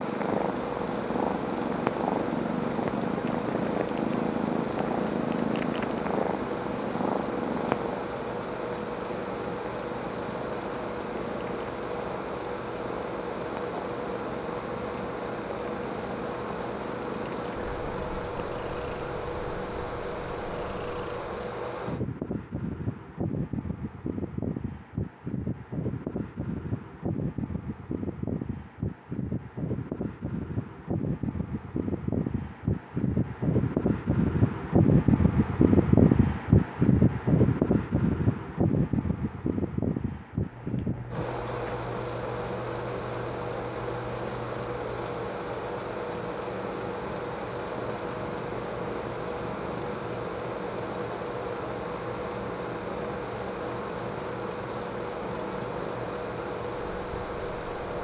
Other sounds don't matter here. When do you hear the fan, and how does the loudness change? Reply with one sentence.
You can hear the fan from 0.0 to 57.9 s, getting louder then quieter.